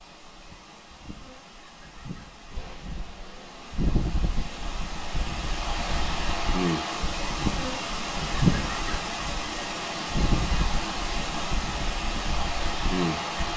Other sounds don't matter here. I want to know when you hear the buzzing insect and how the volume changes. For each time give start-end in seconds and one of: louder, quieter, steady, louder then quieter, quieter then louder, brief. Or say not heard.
0.0-13.5 louder then quieter.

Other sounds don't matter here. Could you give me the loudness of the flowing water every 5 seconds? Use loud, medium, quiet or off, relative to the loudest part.
quiet, loud, loud.